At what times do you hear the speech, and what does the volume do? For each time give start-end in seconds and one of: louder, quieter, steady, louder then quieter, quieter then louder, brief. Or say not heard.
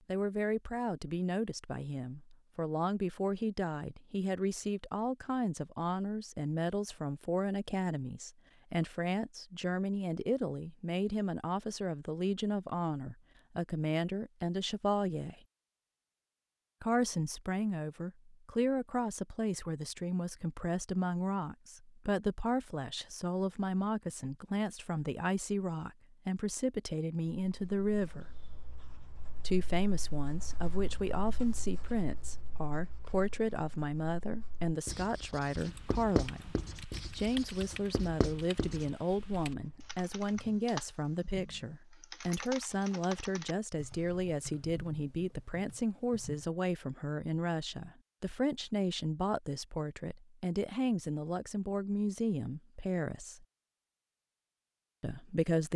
0.1-15.3 steady
16.8-28.3 steady
29.4-53.5 steady
55.0-55.7 brief.